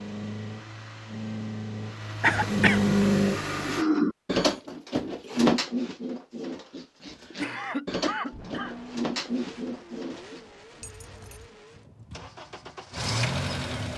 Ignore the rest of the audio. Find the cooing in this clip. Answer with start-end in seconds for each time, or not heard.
3.5-10.4.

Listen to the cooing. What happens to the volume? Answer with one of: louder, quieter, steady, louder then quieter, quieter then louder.
quieter then louder.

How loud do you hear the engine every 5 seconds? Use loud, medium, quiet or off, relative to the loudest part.
loud, quiet, medium.